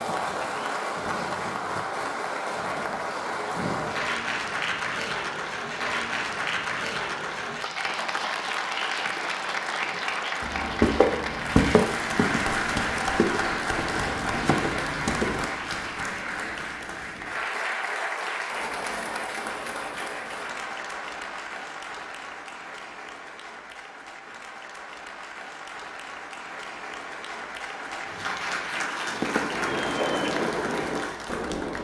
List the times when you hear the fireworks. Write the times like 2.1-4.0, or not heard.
28.9-31.8.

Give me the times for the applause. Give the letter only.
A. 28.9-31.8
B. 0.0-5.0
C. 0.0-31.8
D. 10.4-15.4
C.